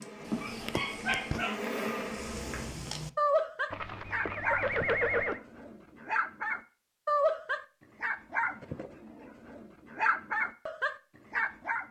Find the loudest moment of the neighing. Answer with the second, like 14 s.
5 s.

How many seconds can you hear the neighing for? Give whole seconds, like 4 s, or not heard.
2 s.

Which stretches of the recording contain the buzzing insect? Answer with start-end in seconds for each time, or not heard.
0.0-2.8.